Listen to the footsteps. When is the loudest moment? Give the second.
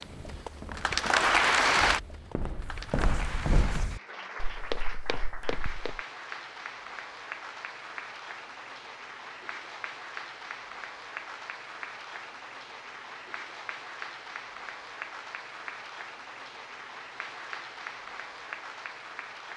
4 s.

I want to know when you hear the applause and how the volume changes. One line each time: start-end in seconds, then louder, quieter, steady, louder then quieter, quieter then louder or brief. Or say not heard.
0.0-19.5 quieter.